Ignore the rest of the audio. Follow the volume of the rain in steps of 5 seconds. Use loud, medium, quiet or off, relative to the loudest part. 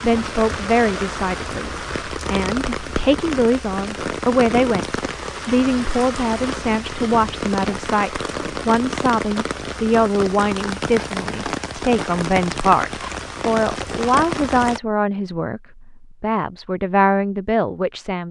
loud, loud, loud, off.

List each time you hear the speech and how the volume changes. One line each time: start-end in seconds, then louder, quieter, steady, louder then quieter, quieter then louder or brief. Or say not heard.
0.0-18.2 steady.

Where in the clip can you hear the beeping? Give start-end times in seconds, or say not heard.
not heard.